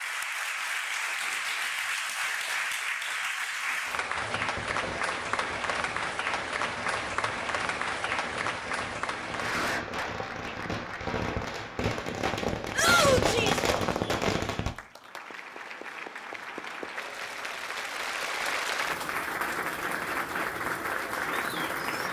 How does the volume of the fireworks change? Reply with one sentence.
The volume of the fireworks goes up.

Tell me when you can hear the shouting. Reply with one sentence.
The shouting can be heard from 12.8 to 13.6 s.